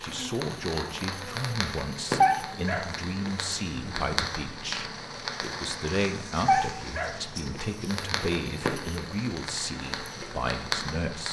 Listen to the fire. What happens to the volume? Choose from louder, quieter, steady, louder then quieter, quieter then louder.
steady.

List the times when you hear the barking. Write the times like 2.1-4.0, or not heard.
2.2-4.1, 6.5-8.3.